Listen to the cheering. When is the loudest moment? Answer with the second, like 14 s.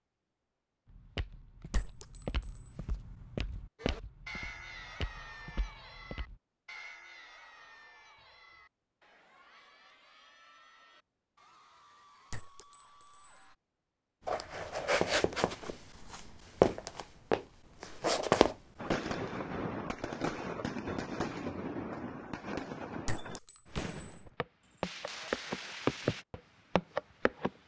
4 s.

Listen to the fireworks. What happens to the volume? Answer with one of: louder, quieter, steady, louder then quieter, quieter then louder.
quieter.